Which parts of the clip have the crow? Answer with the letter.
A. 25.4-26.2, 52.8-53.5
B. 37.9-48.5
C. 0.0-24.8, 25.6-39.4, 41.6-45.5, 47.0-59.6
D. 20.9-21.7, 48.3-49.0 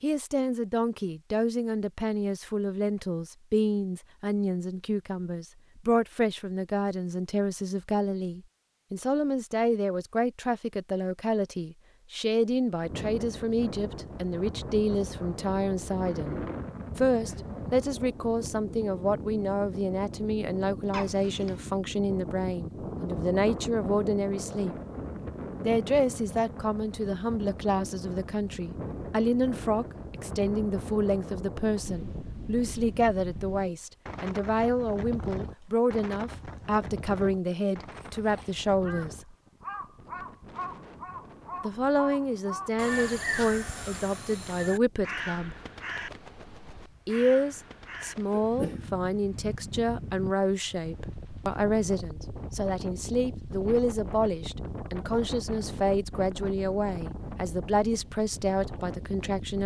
B.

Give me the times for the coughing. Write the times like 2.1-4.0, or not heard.
20.9-21.7, 48.3-49.0.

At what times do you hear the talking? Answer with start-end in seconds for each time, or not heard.
0.0-24.8, 25.6-39.4, 41.6-45.5, 47.0-59.6.